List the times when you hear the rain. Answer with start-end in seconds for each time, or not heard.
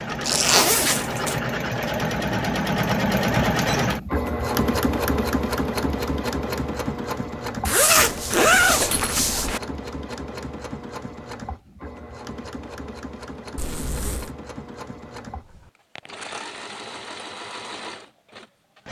not heard.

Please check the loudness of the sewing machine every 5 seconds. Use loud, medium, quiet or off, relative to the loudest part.
loud, medium, quiet, quiet.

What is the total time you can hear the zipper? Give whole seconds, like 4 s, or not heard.
4 s.